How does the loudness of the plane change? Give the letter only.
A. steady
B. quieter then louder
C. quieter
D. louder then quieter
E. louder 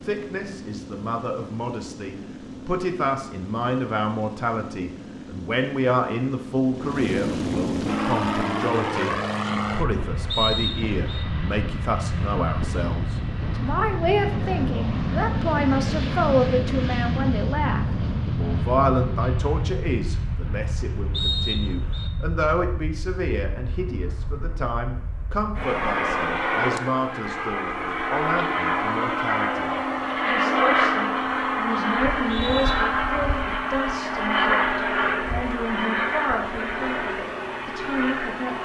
E.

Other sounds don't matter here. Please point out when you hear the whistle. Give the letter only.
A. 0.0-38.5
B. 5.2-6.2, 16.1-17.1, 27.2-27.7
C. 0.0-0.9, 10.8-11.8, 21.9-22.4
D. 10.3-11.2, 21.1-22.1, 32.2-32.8
D.